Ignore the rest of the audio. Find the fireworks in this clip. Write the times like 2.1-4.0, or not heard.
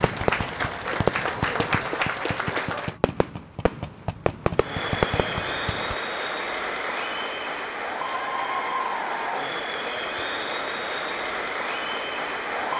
0.0-6.0.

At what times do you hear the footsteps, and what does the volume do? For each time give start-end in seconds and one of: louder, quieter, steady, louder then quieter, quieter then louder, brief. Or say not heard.
not heard.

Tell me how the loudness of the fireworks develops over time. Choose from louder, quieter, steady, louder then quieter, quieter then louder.
quieter then louder.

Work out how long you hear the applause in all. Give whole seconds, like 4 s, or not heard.
11 s.